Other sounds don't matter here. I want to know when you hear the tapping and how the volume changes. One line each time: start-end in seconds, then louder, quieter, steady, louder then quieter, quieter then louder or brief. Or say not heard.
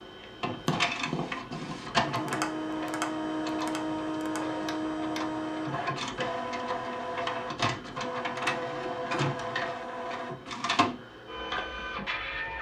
0.6-5.2 quieter.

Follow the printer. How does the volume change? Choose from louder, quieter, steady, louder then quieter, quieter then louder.
steady.